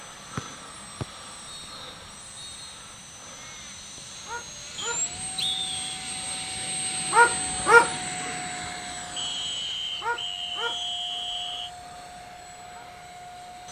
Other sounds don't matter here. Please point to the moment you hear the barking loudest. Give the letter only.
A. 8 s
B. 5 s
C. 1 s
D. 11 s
A.